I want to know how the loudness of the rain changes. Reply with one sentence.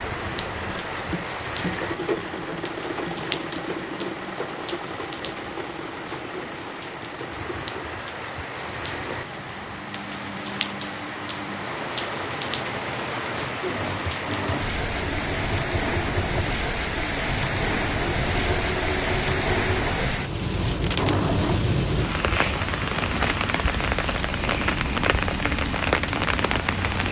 The loudness of the rain goes up.